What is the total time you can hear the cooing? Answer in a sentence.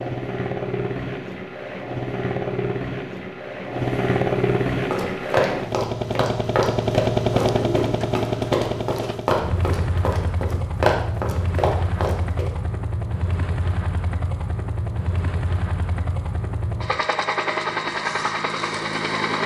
The cooing can be heard for 2 seconds in total.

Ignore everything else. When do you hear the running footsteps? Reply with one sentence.
The running footsteps can be heard from 4.9 to 12.4 s.